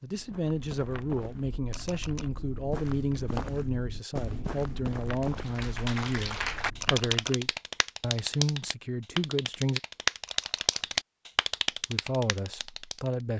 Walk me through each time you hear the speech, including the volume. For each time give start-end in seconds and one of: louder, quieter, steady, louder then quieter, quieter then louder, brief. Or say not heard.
0.0-9.8 steady
11.9-13.3 brief.